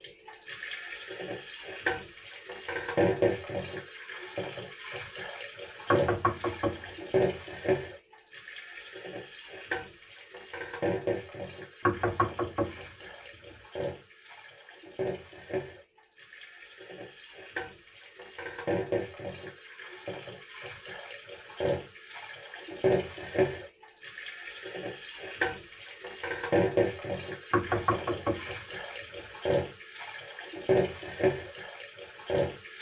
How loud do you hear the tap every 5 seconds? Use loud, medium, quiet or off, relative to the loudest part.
loud, loud, medium, medium, loud, loud, loud.